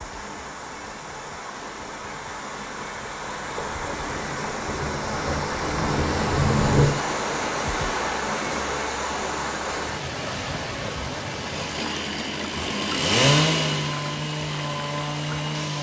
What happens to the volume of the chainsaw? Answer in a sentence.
The loudness of the chainsaw goes up, then down.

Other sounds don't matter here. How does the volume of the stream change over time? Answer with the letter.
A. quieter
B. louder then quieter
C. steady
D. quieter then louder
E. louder
B.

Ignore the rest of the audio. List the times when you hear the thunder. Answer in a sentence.
You can hear the thunder from 3.5 to 7.0 s.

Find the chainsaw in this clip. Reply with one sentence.
You can hear the chainsaw from 11.3 to 15.7 s.